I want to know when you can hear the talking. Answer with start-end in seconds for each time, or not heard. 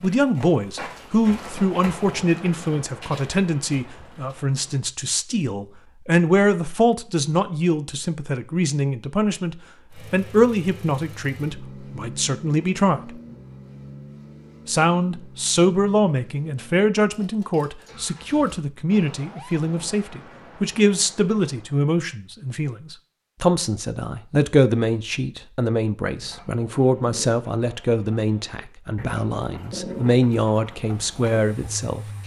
0.0-13.1, 14.7-32.0.